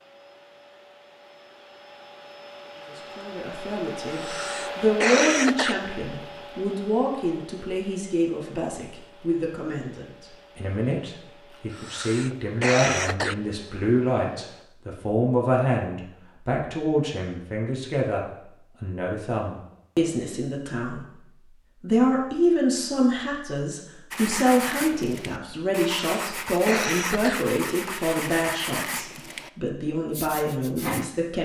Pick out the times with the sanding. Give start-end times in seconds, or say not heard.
24.1-29.5, 30.1-31.1.